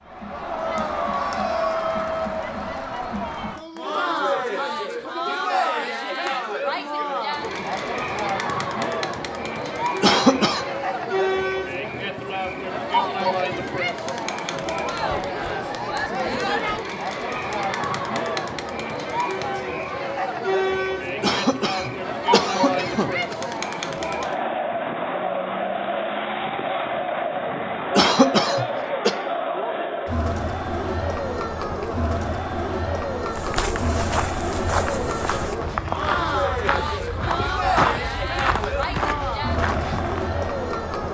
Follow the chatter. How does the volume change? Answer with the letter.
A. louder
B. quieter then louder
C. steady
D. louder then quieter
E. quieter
C.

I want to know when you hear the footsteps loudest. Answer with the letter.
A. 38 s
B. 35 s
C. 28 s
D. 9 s
A.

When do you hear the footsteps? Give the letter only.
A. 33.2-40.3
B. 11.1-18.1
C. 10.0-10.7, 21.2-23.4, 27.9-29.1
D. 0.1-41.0
A.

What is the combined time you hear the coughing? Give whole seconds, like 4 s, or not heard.
4 s.